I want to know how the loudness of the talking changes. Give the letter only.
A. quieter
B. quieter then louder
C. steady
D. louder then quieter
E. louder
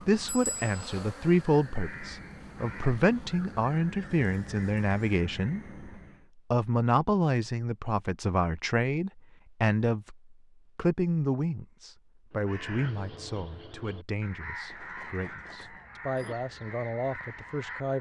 A.